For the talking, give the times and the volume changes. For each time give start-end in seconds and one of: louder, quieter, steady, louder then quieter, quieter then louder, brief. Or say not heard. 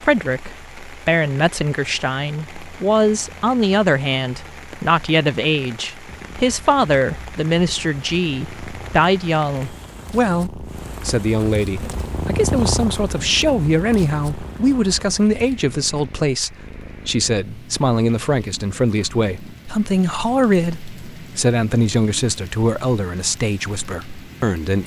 0.0-24.8 steady.